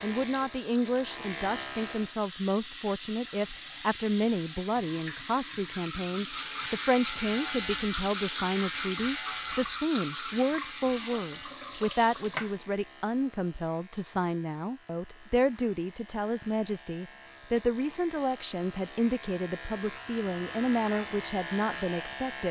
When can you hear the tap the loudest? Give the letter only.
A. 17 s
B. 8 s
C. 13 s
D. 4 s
B.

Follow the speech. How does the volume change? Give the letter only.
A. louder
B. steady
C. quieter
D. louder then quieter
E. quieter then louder
B.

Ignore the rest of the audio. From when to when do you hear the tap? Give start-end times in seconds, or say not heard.
0.0-12.6.